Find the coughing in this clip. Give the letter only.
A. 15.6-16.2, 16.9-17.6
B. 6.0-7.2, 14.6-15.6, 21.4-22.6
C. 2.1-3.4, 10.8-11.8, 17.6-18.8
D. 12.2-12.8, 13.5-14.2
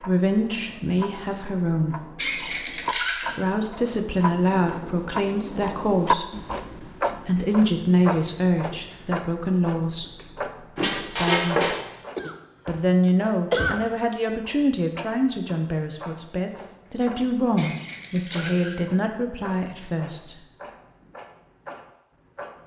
D.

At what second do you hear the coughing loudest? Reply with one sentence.
The volume of the coughing peaks at 14 seconds.